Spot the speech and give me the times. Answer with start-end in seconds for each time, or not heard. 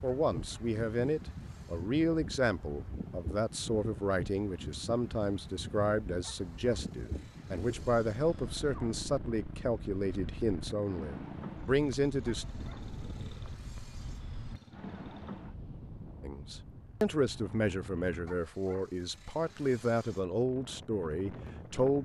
0.0-12.4, 16.2-21.9.